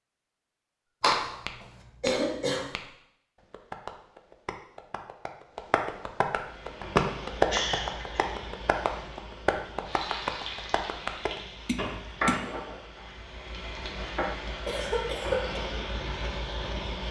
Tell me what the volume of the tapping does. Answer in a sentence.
The loudness of the tapping goes up, then down.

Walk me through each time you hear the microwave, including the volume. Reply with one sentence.
You can't hear the microwave here.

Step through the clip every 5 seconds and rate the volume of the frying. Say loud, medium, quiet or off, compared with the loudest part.
off, medium, loud, loud.